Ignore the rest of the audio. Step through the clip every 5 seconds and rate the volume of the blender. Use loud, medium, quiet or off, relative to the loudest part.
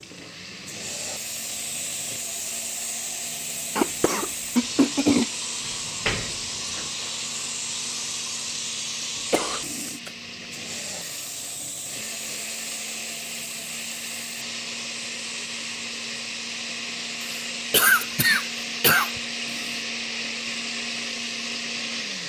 medium, medium, medium, loud, loud.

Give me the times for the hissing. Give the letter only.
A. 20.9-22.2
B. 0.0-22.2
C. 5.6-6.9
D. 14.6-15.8
B.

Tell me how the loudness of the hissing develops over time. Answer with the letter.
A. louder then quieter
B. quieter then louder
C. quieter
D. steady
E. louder
C.